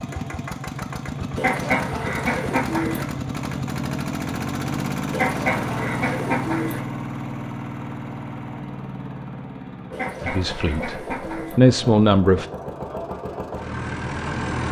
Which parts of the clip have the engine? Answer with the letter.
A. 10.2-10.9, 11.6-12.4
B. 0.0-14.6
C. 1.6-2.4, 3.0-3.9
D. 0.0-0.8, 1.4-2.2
B.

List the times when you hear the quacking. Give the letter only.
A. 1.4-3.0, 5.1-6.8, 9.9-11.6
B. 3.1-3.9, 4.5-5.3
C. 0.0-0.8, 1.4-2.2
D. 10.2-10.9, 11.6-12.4
A.